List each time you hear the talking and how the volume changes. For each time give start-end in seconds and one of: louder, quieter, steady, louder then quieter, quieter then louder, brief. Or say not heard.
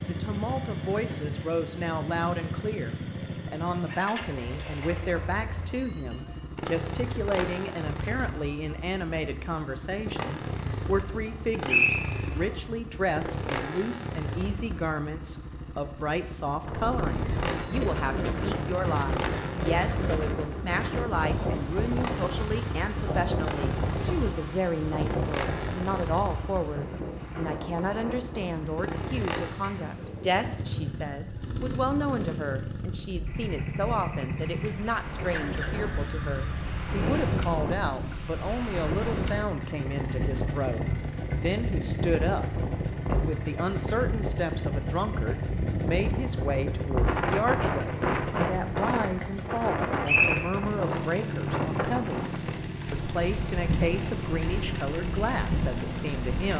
0.0-56.5 steady.